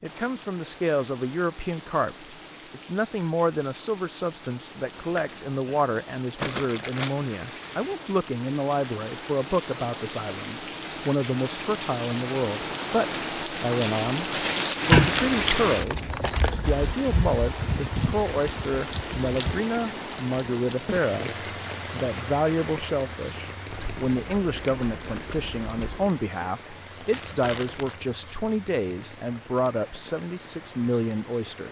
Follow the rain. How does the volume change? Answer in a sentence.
The volume of the rain goes up, then down.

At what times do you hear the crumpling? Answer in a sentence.
The crumpling can be heard from 6.3 to 7.2 s, from 13.7 to 15.2 s and from 27.1 to 28.4 s.